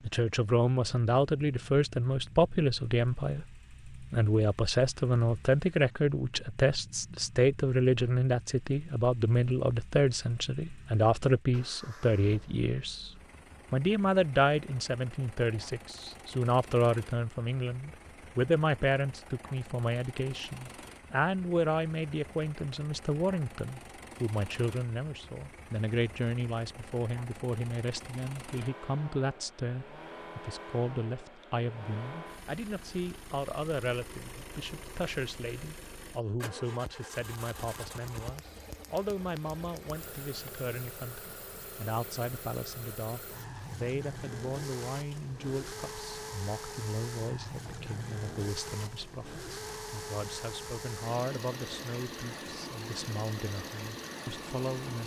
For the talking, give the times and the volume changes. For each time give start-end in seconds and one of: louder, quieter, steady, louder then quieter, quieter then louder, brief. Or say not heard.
0.0-13.1 steady
13.7-55.0 quieter.